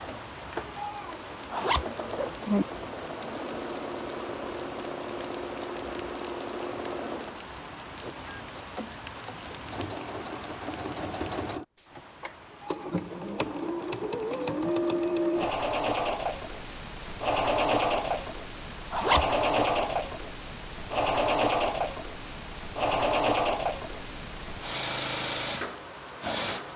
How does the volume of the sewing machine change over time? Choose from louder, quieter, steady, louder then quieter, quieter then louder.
louder.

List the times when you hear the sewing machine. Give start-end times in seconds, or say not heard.
0.0-26.7.